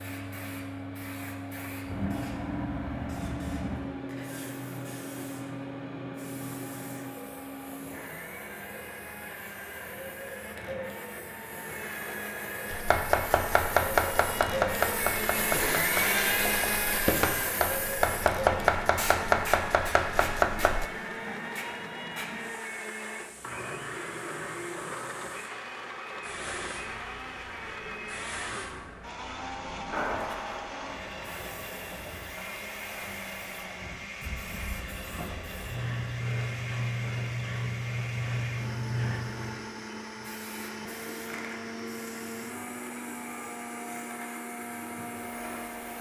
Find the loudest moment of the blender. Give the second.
16 s.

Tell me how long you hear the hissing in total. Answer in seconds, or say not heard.
46 s.